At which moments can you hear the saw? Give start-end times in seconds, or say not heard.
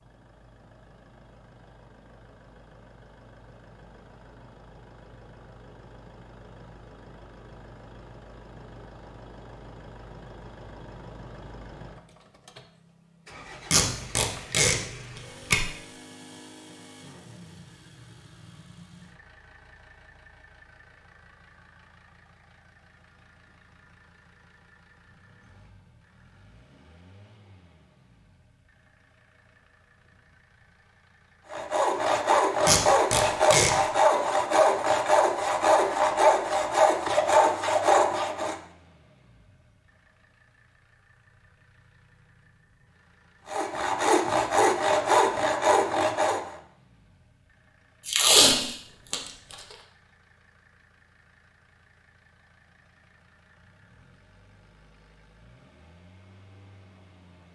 31.5-38.5, 43.5-46.5.